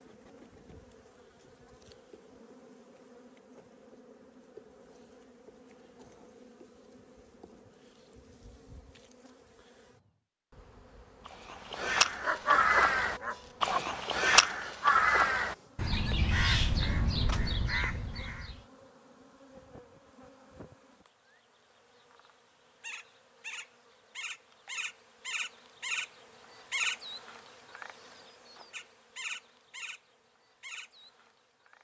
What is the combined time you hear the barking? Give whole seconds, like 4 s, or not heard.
2 s.